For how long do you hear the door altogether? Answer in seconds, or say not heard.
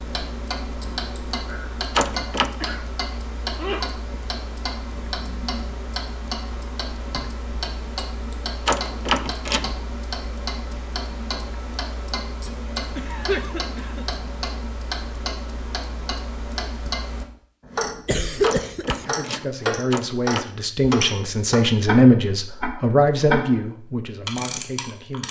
4 s.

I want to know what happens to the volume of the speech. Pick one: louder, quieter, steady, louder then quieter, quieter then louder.
louder then quieter.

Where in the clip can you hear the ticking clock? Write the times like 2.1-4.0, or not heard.
0.0-25.2.